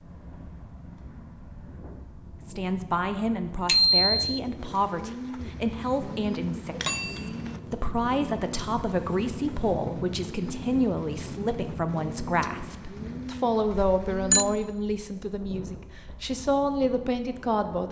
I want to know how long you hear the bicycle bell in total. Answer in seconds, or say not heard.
2 s.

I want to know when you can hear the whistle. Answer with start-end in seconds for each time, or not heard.
not heard.